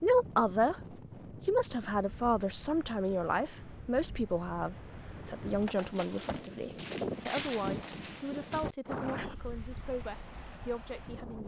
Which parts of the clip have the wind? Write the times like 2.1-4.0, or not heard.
0.0-11.4.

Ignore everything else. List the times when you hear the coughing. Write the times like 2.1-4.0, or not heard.
not heard.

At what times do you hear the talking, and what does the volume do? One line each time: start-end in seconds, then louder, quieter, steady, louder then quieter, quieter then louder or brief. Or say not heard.
0.0-0.8 brief
1.4-11.4 quieter.